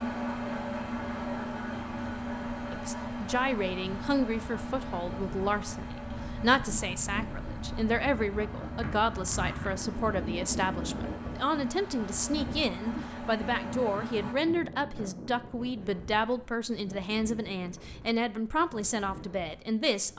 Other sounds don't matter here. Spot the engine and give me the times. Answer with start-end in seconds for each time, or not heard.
0.0-14.3.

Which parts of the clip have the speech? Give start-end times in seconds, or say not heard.
2.7-20.1.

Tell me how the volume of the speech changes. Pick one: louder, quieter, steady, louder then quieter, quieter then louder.
steady.